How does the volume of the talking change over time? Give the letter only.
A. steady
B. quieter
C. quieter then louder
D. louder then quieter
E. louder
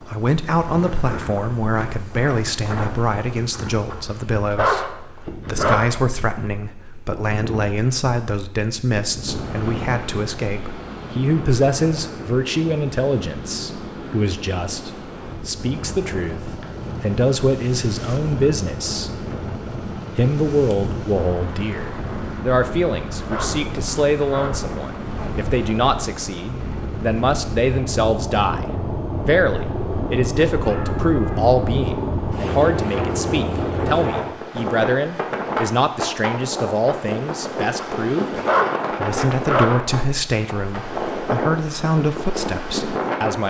A.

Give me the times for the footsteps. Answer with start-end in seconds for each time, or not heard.
not heard.